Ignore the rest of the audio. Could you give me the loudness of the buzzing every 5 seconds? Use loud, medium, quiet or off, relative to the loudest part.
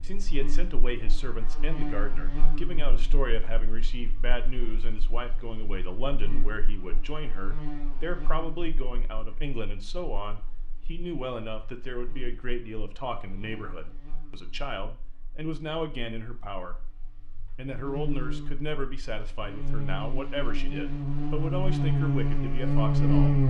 quiet, quiet, quiet, quiet, loud.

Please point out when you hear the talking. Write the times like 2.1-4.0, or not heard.
0.0-16.8, 17.6-23.4.